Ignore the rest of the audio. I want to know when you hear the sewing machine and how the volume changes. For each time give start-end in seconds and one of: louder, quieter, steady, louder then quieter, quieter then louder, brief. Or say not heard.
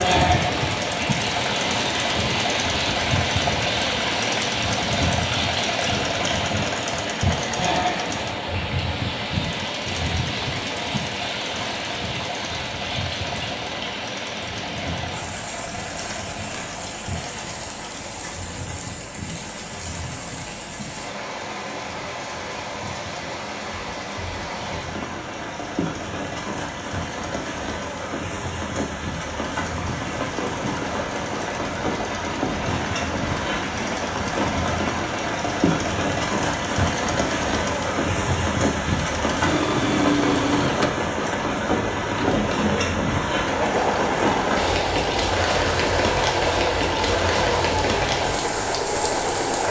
0.0-49.6 quieter then louder.